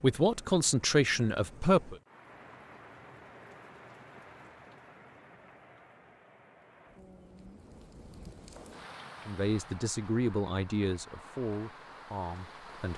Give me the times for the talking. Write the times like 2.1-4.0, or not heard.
0.0-1.9, 9.2-12.9.